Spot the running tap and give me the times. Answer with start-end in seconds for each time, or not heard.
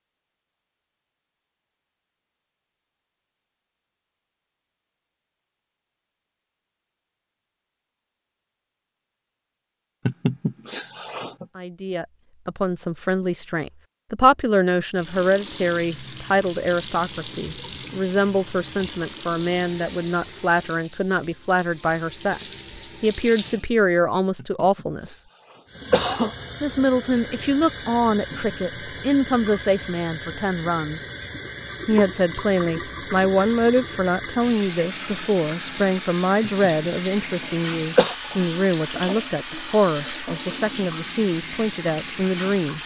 14.9-23.7, 25.6-42.8.